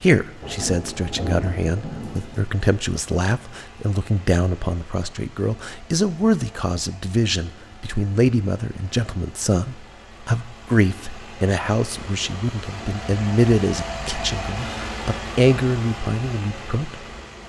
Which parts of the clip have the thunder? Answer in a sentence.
The thunder can be heard from 0.4 to 2.5 s.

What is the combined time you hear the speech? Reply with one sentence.
You can hear the speech for 17 seconds altogether.